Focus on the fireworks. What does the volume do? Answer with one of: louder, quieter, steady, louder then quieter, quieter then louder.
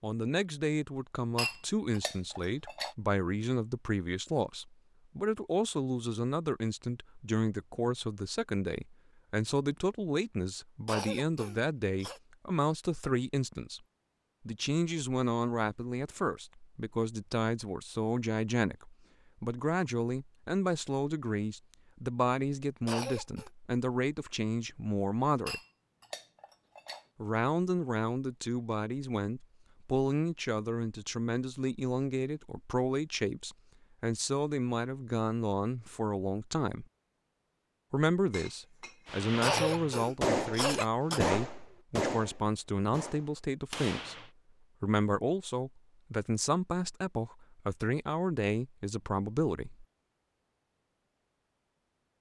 quieter.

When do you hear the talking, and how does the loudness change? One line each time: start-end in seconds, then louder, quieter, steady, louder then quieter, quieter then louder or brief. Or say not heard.
0.0-13.8 steady
14.4-25.6 steady
27.2-36.9 steady
37.9-49.9 steady.